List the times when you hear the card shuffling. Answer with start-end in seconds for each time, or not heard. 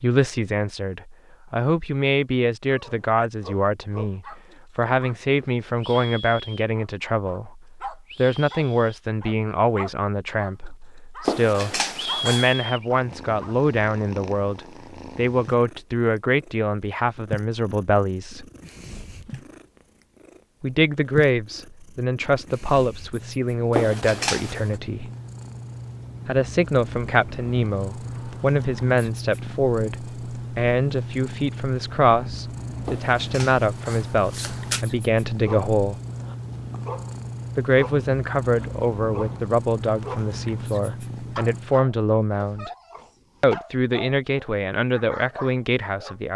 11.2-12.6, 23.7-24.8, 32.9-34.9.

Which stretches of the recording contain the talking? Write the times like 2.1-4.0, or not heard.
0.0-18.4, 20.6-25.1, 26.2-36.0, 37.5-42.7, 43.4-46.3.